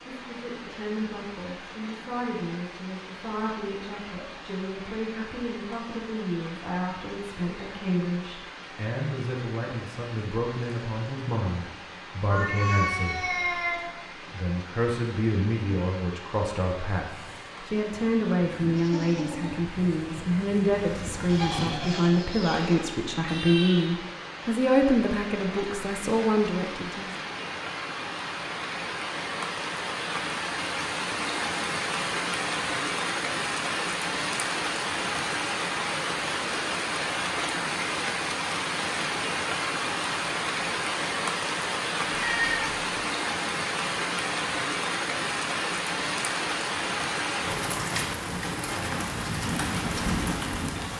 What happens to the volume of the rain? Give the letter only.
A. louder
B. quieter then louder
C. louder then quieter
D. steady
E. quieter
A.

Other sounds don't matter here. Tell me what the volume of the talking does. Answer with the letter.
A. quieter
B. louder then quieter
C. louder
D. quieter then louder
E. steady
C.